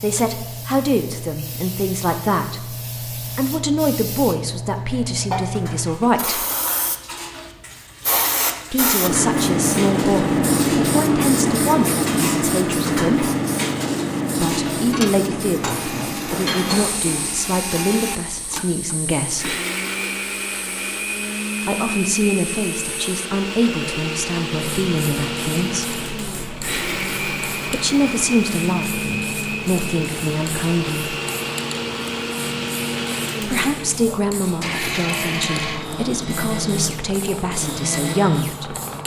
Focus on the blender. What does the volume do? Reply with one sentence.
The loudness of the blender stays about the same.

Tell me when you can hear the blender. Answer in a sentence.
You can hear the blender from 15.6 to 39.0 s.